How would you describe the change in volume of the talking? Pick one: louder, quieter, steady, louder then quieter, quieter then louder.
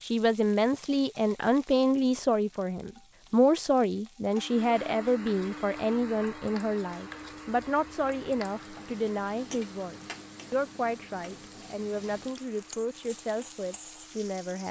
quieter.